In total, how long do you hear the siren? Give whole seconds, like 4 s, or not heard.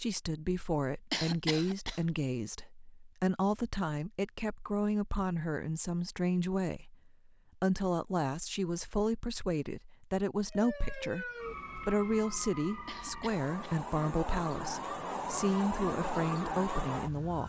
7 s.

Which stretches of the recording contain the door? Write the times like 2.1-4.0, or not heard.
not heard.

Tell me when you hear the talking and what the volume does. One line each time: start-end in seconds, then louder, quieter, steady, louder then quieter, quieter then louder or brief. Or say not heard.
0.0-17.4 steady.